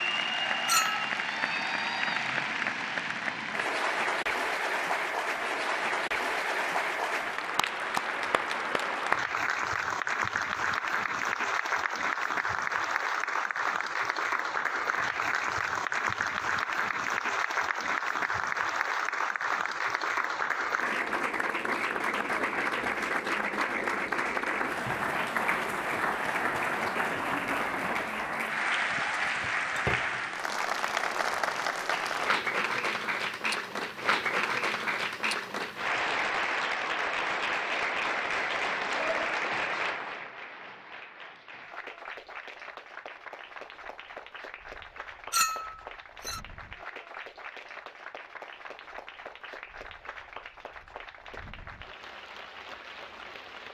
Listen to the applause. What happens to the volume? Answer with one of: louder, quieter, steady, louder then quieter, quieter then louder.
quieter.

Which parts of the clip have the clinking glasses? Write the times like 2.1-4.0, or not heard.
0.7-1.1, 29.1-30.2, 45.3-46.4.